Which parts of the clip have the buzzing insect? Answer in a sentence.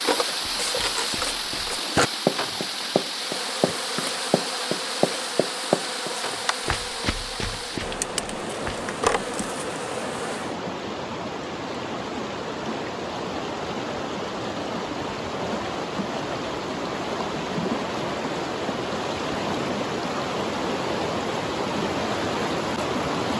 You can hear the buzzing insect from 0.0 to 10.6 s.